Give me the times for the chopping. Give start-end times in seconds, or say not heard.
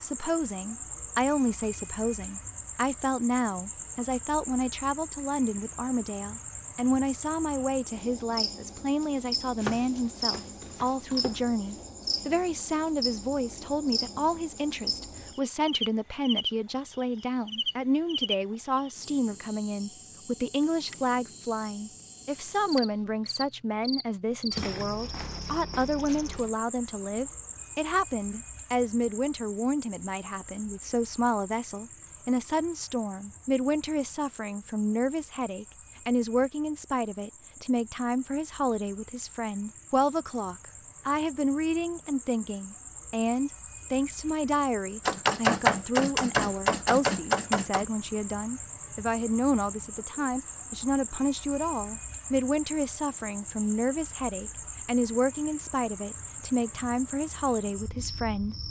9.6-11.4, 45.0-47.9.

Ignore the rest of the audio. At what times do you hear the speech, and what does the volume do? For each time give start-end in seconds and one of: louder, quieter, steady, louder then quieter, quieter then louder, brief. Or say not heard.
0.0-58.5 steady.